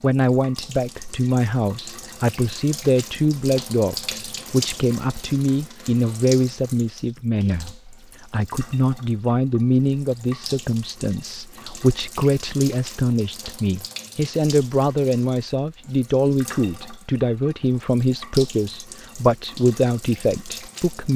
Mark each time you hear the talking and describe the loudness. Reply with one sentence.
You can hear the talking from 0.0 to 21.1 s, at a steady volume.